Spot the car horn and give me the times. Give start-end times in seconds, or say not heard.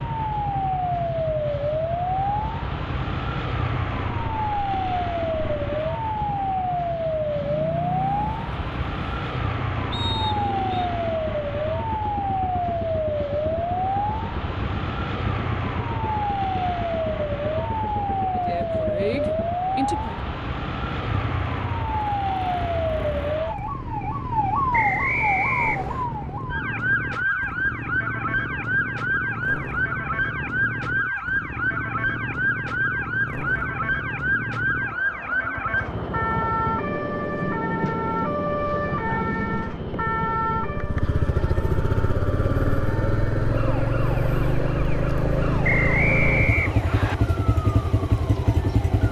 not heard.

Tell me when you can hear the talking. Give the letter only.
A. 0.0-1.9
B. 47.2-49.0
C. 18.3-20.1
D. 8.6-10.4
C.